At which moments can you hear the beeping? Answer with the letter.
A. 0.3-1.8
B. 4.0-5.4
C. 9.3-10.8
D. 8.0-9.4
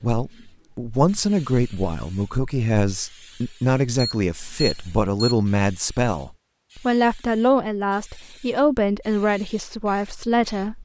B.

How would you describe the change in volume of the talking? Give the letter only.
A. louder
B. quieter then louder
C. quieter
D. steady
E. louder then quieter
D.